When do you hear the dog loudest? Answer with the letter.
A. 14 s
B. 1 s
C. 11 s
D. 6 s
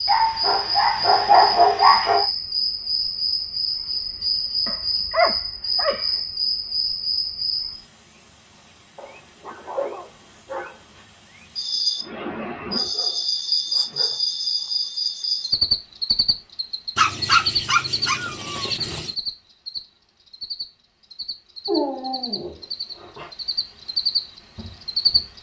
B.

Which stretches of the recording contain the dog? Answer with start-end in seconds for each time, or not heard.
0.1-2.2, 4.7-6.0, 8.9-11.0, 12.7-14.1, 16.9-19.1, 21.6-23.3.